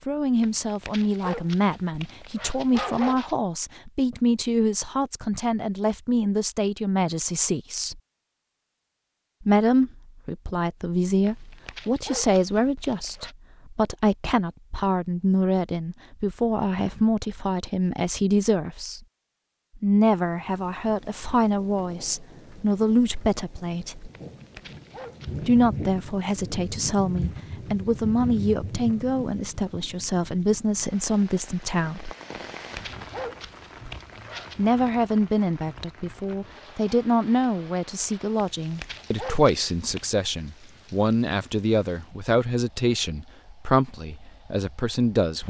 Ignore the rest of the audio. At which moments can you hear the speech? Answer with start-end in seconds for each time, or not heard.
0.1-8.0, 9.4-19.0, 19.8-24.1, 25.4-32.1, 34.5-45.4.